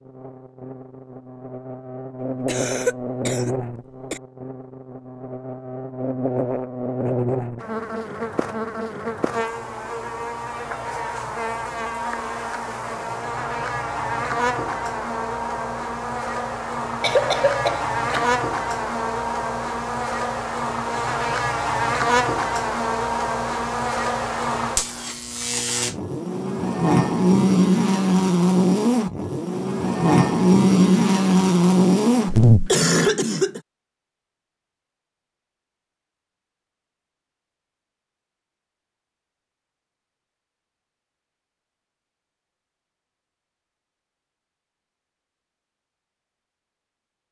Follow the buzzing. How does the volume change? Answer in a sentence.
The loudness of the buzzing goes up.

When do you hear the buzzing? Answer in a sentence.
You can hear the buzzing from 0.0 to 32.7 s.